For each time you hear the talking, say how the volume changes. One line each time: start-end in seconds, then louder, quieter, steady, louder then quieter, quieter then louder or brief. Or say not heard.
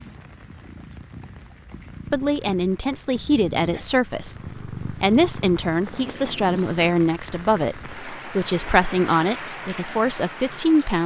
2.1-11.0 steady.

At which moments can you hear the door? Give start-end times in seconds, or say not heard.
not heard.